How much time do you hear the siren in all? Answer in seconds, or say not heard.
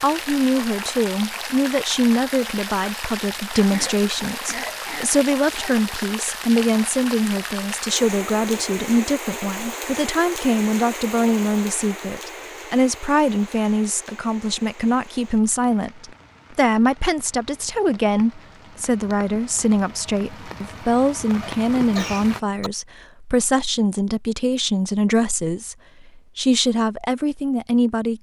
not heard.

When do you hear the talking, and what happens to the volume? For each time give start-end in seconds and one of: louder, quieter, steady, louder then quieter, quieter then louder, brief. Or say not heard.
0.0-28.1 steady.